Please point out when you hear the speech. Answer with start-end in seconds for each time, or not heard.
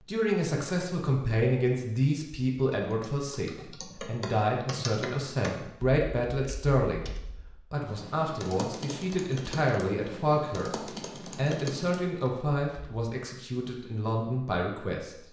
0.0-15.2.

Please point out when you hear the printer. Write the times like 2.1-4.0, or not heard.
not heard.